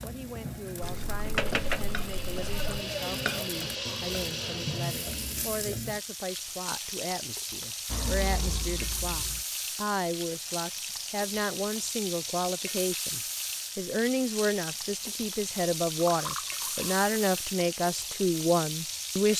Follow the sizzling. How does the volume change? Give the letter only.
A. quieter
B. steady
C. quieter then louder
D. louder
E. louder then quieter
B.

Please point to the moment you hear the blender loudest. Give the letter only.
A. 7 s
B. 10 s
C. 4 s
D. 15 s
C.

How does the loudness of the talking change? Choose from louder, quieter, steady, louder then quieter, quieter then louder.
louder.